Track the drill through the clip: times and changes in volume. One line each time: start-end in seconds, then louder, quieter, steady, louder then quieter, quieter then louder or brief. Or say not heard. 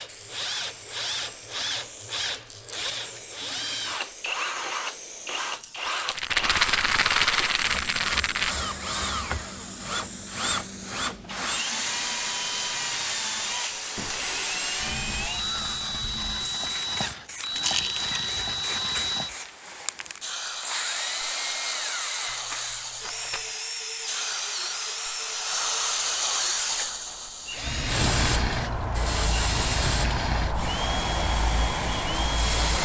0.0-32.8 steady.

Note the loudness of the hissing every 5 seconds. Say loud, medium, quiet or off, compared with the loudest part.
quiet, quiet, medium, medium, medium, loud, loud.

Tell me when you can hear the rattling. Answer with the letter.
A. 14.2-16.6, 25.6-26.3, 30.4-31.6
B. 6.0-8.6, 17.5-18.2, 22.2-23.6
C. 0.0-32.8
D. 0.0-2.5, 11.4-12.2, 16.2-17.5
B.